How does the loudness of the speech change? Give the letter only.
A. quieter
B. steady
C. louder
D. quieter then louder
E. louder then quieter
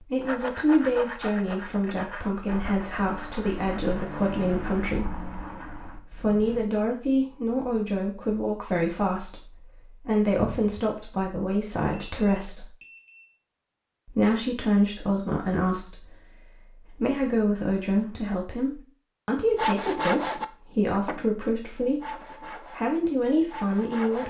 B.